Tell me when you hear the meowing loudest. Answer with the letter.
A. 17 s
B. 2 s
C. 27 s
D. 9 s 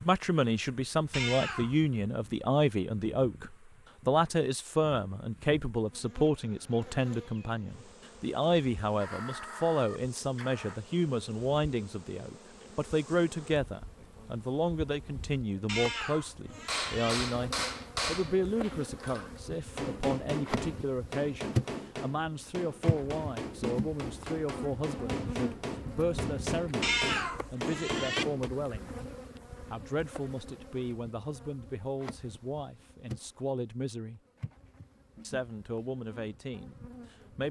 C.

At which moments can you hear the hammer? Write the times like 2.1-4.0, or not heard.
16.6-28.5.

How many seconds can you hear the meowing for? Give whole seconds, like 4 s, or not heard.
4 s.